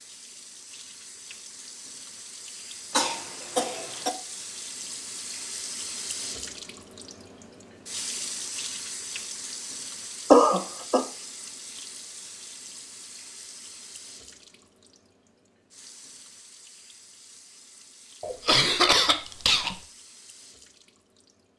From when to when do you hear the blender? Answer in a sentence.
The blender can't be heard in this clip.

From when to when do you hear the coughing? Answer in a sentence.
The coughing can be heard from 2.9 to 4.1 s, from 10.3 to 11.1 s and from 18.2 to 19.8 s.